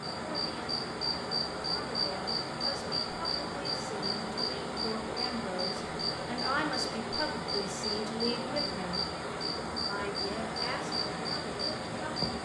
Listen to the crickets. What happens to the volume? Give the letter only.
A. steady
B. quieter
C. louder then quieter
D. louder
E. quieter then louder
A.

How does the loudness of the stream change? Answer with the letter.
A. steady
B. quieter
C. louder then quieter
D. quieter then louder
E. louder
A.